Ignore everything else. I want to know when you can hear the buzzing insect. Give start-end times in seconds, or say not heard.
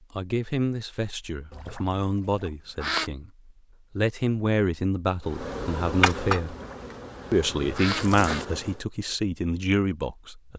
5.2-8.8.